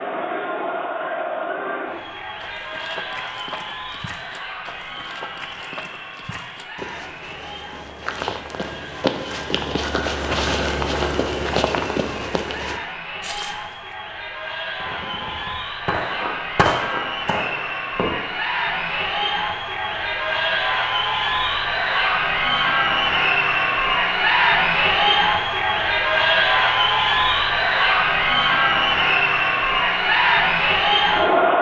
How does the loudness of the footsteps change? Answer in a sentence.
The volume of the footsteps goes up.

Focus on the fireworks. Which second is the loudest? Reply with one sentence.
The loudest moment of the fireworks is at 17 seconds.